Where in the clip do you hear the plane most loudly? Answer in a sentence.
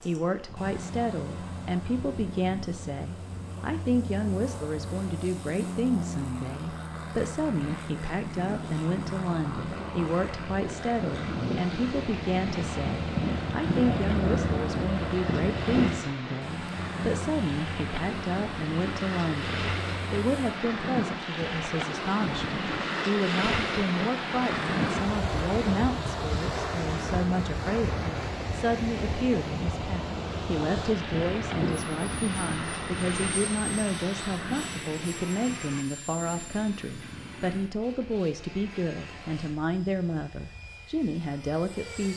The volume of the plane peaks at 14 seconds.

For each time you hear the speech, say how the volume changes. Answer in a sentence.
The speech can be heard from 0.0 to 42.1 s, at a steady volume.